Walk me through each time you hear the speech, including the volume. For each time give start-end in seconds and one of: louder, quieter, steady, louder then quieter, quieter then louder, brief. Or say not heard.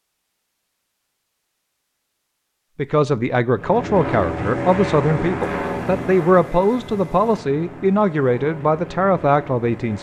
2.8-9.9 steady.